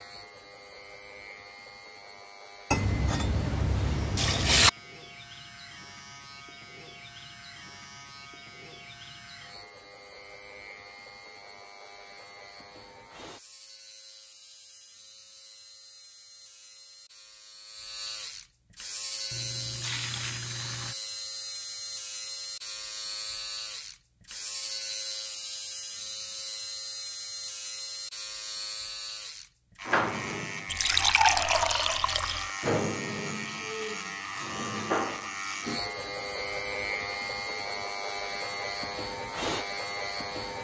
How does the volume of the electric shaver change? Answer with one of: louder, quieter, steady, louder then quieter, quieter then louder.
louder.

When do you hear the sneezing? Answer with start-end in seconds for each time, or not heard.
not heard.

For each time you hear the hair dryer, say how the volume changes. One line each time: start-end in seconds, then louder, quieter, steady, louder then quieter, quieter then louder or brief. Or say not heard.
not heard.